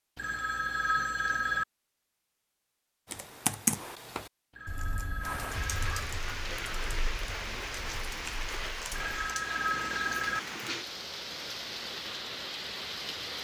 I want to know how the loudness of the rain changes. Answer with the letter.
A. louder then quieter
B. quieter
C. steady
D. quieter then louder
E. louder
C.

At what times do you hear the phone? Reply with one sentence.
You can hear the phone from 0.1 to 1.6 s, from 4.5 to 6.0 s and from 8.9 to 10.4 s.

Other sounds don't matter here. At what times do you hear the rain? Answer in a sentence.
You can hear the rain from 5.2 to 13.3 s.